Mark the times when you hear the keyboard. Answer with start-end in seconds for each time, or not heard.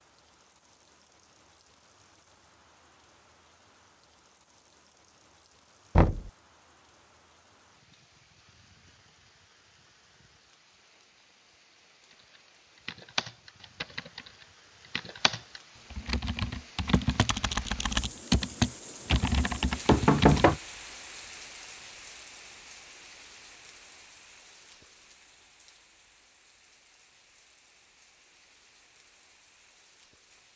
12.1-20.6.